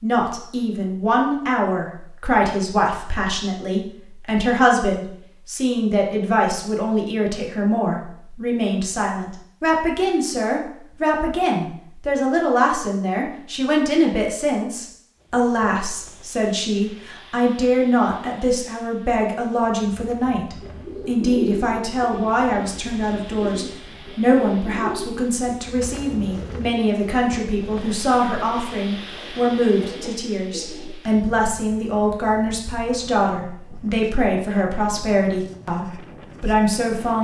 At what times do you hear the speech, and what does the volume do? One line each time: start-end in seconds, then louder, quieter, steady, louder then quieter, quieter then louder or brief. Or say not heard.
0.0-37.1 steady.